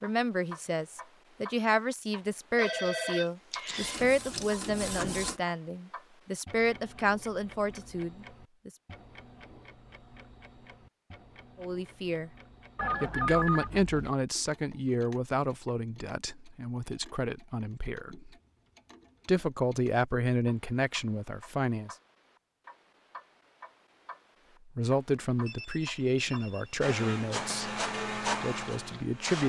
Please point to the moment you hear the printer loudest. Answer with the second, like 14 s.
28 s.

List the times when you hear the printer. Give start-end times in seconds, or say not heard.
3.8-5.4, 26.8-29.4.